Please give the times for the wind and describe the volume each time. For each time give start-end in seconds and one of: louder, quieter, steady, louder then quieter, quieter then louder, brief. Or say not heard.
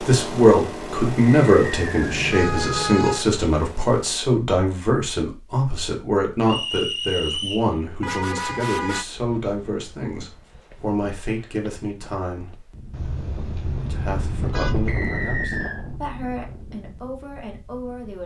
9.1-18.2 louder then quieter.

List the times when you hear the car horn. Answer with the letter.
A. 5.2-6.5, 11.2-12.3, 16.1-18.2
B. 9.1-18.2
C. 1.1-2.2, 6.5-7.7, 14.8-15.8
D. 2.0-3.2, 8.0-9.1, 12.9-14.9
D.